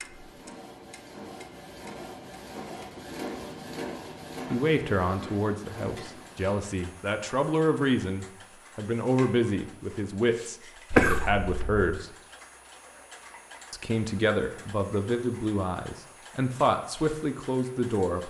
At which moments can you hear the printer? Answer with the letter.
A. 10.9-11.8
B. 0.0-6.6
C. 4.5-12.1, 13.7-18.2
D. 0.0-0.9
B.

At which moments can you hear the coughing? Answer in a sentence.
The coughing can be heard from 10.9 to 11.8 s.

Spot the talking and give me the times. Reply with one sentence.
The talking can be heard from 4.5 to 12.1 s and from 13.7 to 18.2 s.